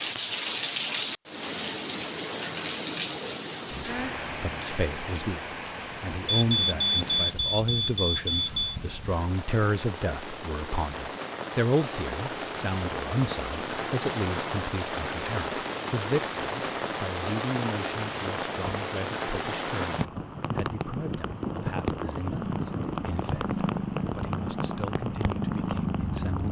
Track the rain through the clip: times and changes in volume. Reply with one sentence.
The rain can be heard from 0.0 to 26.4 s, getting quieter then louder.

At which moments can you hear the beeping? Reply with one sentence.
You can hear the beeping from 6.2 to 8.8 s.